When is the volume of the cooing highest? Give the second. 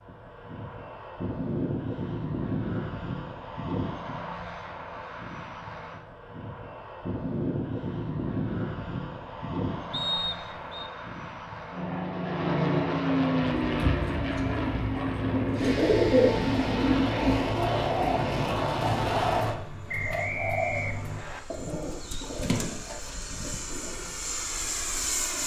16 s.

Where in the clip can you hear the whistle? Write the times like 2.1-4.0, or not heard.
9.9-10.9, 19.9-21.4.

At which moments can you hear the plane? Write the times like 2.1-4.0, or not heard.
0.0-25.4.